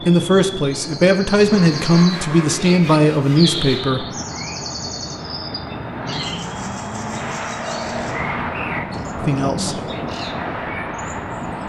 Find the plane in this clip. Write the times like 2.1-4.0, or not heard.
0.0-11.6.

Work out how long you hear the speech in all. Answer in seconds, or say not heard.
5 s.